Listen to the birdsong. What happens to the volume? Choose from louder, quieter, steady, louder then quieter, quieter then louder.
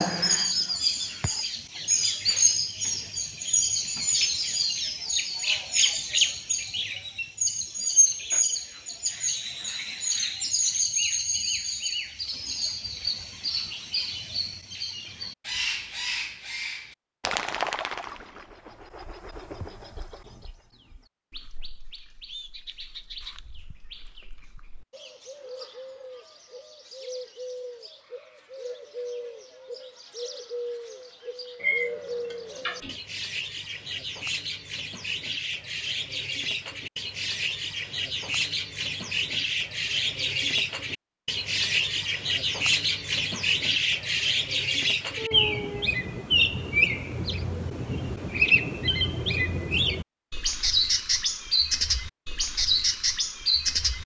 quieter then louder.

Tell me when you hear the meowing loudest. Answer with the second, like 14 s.
32 s.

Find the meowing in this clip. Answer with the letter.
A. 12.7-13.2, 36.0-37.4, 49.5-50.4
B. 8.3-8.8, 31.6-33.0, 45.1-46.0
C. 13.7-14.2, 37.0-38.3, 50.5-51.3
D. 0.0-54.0
B.